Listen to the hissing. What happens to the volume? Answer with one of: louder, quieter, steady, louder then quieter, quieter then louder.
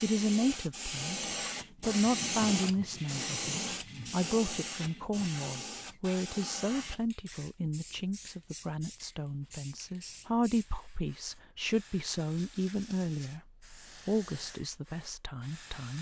quieter.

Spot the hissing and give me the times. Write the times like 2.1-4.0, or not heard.
0.0-15.9.